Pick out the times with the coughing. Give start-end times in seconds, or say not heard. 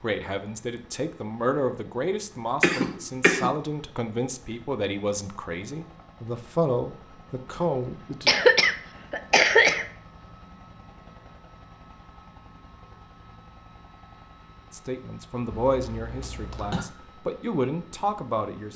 2.6-3.5, 8.2-9.8, 15.5-16.9.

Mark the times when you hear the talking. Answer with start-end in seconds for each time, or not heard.
0.0-8.3, 14.7-18.7.